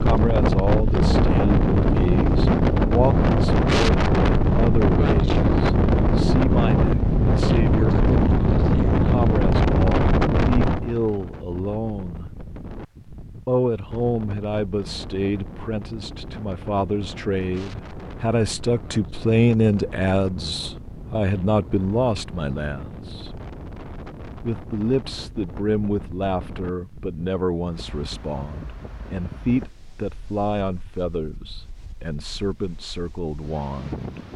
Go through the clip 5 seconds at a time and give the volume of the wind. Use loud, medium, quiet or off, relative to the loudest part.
loud, loud, medium, quiet, quiet, quiet, quiet.